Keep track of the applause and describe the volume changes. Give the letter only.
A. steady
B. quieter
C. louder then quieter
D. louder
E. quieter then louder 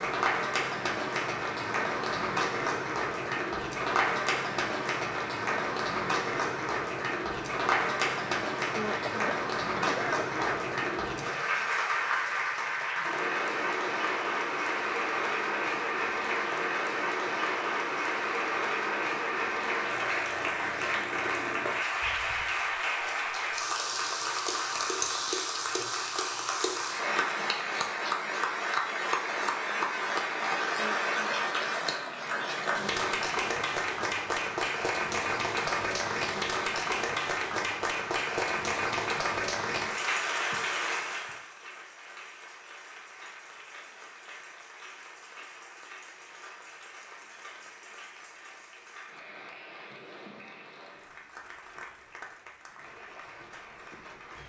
B.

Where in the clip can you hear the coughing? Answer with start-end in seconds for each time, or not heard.
8.8-10.7, 30.8-31.4.